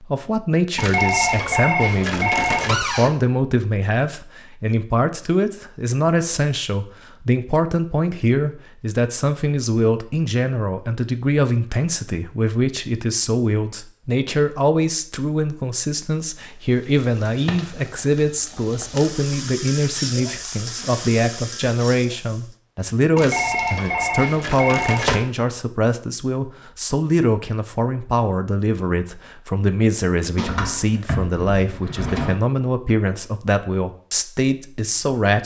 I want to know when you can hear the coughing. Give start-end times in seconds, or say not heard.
not heard.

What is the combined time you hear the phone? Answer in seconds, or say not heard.
4 s.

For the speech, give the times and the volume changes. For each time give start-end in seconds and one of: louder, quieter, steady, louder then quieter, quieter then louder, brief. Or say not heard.
0.0-35.4 steady.